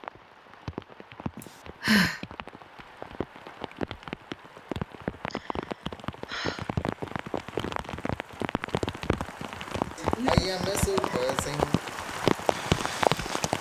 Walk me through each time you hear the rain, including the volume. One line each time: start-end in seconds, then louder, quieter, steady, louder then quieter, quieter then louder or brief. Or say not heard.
0.0-13.5 louder.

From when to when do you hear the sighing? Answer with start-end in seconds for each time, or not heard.
1.4-2.2, 5.3-6.7, 9.9-11.8.